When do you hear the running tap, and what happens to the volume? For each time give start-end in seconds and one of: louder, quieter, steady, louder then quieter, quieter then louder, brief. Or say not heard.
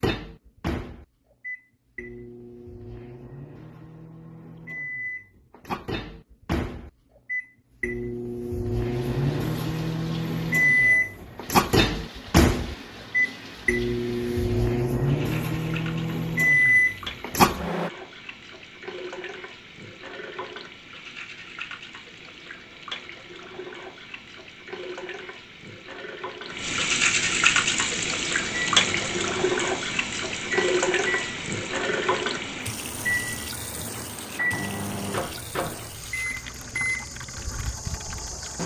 8.8-38.6 louder then quieter.